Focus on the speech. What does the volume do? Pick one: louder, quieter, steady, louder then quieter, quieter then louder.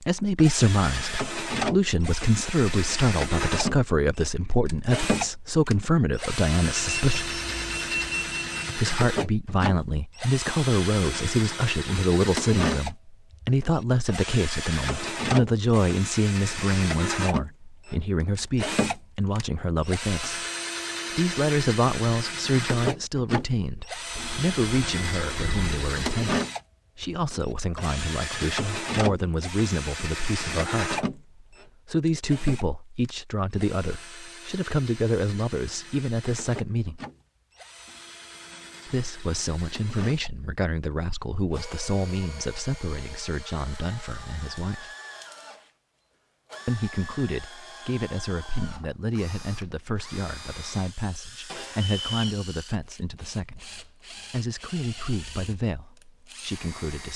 quieter.